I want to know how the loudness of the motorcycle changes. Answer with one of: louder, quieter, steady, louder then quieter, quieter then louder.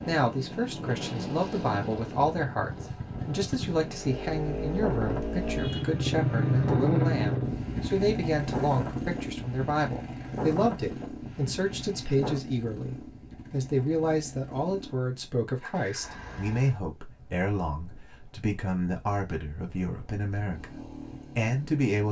louder then quieter.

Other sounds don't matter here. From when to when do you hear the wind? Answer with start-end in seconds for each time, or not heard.
0.0-12.4.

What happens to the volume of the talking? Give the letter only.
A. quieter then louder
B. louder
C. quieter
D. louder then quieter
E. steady
E.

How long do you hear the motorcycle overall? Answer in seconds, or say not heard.
22 s.